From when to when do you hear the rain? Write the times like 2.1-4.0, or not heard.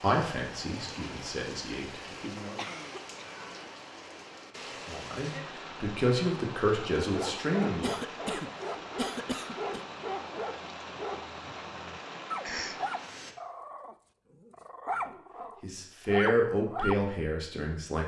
0.0-13.3.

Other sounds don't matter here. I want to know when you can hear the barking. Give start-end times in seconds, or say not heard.
7.0-17.1.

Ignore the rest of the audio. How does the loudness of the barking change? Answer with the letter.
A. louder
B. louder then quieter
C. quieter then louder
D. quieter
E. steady
C.